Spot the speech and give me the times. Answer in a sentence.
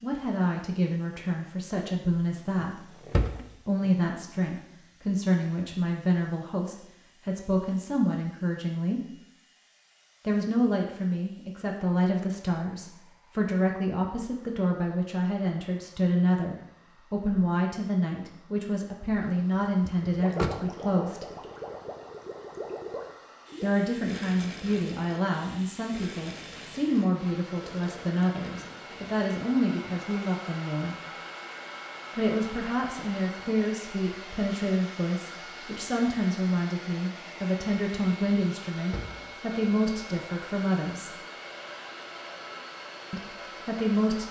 You can hear the speech from 0.0 to 3.0 s, from 3.6 to 9.0 s, from 10.2 to 21.2 s, from 23.6 to 30.9 s, from 32.1 to 41.1 s and from 43.1 to 44.2 s.